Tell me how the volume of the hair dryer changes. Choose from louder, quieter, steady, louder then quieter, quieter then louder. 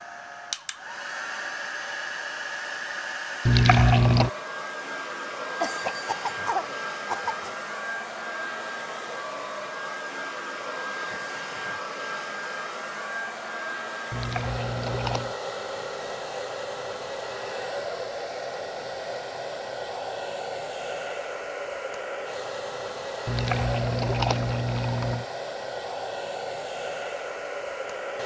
steady.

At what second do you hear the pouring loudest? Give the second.
4 s.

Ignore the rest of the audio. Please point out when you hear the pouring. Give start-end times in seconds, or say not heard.
3.5-4.3, 14.1-15.3, 23.2-25.2.